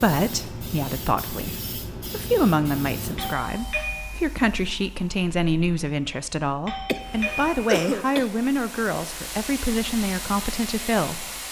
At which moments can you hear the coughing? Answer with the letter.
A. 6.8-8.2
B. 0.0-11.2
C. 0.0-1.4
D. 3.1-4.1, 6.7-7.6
A.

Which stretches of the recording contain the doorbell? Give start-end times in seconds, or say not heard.
3.1-4.1, 6.7-7.6.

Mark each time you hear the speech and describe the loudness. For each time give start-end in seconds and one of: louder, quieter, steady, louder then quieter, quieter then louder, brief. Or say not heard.
0.0-11.2 steady.